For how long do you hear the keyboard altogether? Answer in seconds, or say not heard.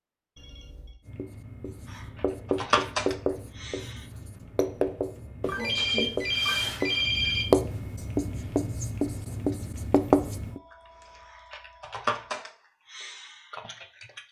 6 s.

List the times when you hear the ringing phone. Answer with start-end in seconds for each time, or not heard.
0.3-1.0, 5.4-7.5, 10.4-12.3.